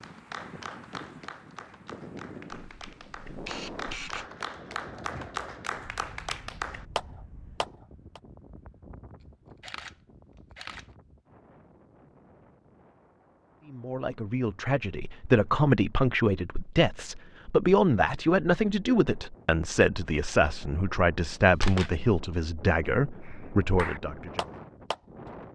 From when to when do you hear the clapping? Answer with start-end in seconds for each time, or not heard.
0.0-8.2, 23.2-25.4.